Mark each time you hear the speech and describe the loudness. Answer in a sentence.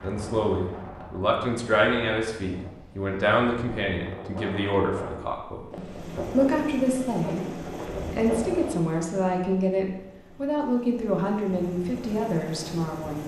The speech can be heard from 0.0 to 13.2 s, at a steady volume.